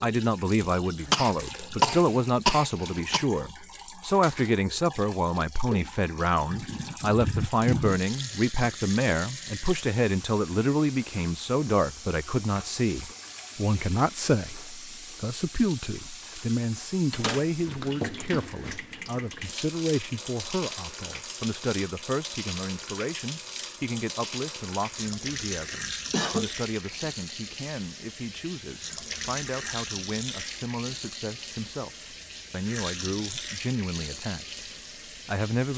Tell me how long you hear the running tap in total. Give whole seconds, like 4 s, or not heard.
36 s.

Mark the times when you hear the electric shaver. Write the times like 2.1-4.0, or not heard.
not heard.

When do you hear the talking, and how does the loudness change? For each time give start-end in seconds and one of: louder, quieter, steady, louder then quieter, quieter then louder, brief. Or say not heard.
0.0-34.6 quieter
35.2-35.7 brief.